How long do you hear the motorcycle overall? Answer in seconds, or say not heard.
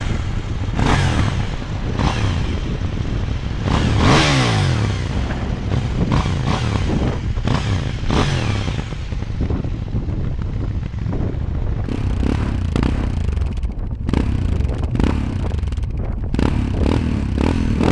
18 s.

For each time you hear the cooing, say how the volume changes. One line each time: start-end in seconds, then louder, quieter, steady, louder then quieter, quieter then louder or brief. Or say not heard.
not heard.